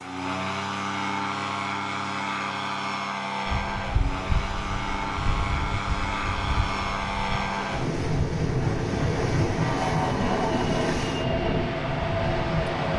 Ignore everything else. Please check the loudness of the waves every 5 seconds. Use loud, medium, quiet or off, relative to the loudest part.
medium, loud, loud.